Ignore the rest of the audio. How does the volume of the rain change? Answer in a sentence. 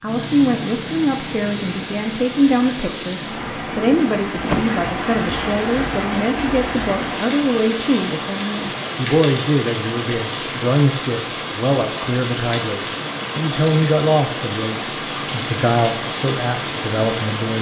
The volume of the rain stays about the same.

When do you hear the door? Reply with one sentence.
You can hear the door from 3.5 to 4.7 s.